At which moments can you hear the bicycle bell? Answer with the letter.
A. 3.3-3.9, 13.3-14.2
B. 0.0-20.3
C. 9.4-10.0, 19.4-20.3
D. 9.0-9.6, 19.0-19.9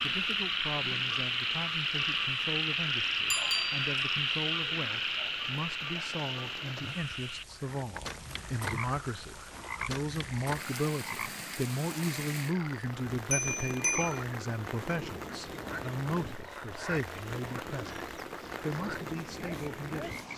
A.